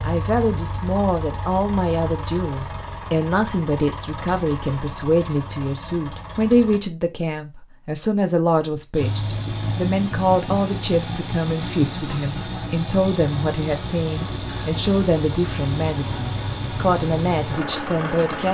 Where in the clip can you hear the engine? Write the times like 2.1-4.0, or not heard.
0.0-6.8, 8.9-18.4.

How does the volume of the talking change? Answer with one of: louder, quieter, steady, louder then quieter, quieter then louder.
steady.